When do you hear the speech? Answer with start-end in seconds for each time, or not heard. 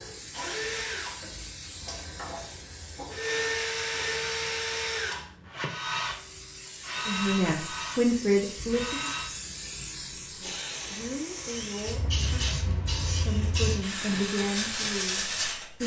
7.0-9.1, 10.4-15.8.